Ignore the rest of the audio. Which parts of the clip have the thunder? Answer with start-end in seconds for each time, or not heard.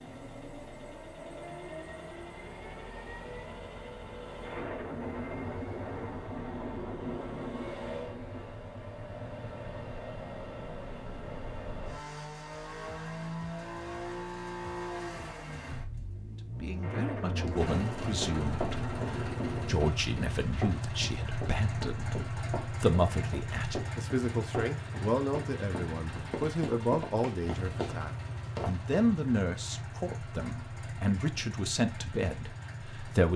4.4-8.4, 16.8-19.8.